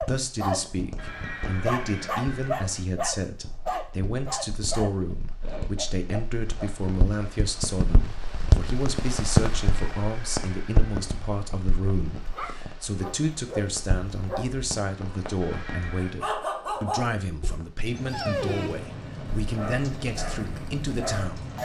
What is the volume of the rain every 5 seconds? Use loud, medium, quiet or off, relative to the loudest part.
quiet, loud, medium, medium, medium.